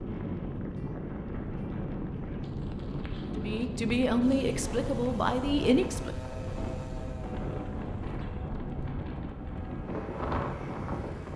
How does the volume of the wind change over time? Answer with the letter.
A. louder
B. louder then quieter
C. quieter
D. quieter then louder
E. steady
E.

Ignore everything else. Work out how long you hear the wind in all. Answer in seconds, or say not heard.
11 s.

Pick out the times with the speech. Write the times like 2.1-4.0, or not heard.
3.3-6.4.